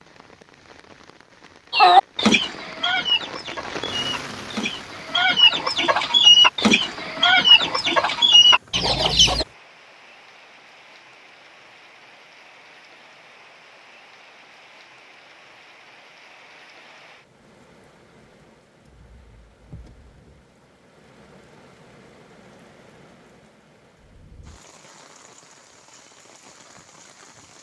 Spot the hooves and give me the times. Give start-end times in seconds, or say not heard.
not heard.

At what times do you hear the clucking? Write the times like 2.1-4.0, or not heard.
1.7-9.4.